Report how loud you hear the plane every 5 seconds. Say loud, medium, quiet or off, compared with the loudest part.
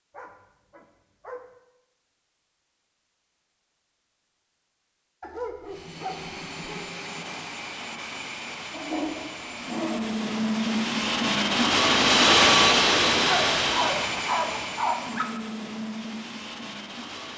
off, quiet, loud, quiet.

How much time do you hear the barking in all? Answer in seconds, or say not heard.
6 s.